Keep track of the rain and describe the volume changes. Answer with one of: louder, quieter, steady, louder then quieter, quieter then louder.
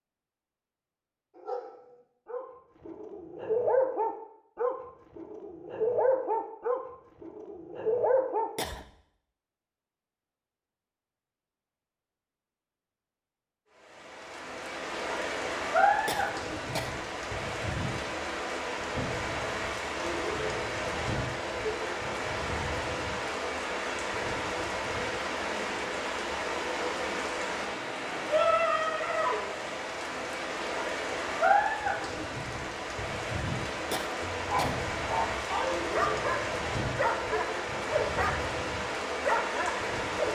steady.